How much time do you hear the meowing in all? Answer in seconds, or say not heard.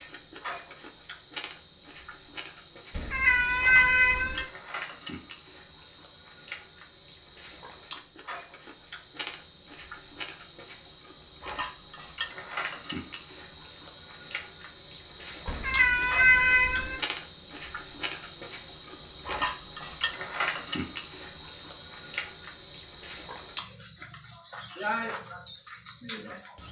3 s.